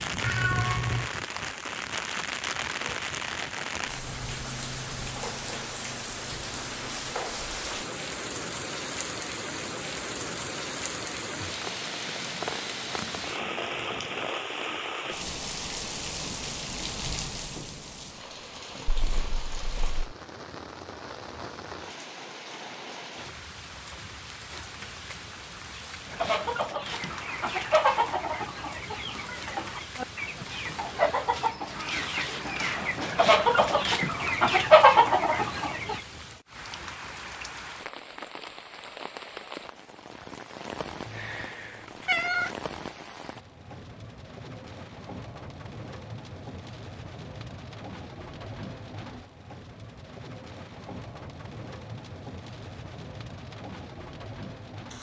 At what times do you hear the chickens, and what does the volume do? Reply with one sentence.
The chickens can be heard from 26.1 to 36.0 s, getting quieter then louder.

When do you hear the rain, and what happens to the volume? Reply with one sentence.
You can hear the rain from 0.0 to 54.9 s, getting quieter.